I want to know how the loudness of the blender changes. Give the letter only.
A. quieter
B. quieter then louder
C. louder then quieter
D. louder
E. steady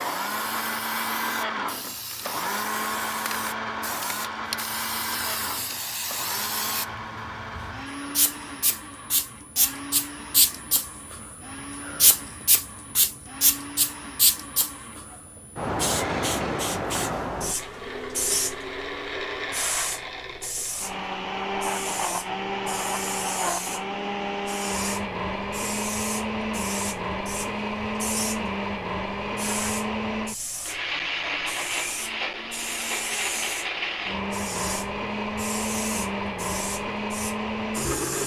B.